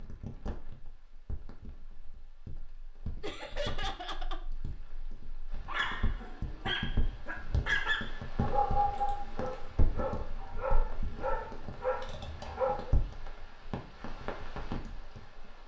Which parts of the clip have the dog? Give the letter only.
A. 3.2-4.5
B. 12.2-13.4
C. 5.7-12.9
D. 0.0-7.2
C.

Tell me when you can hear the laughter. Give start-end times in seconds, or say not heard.
3.2-4.5.